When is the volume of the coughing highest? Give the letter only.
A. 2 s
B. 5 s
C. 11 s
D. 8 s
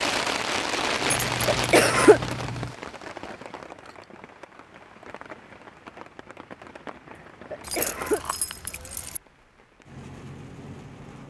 A.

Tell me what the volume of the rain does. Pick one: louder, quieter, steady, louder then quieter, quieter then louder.
quieter.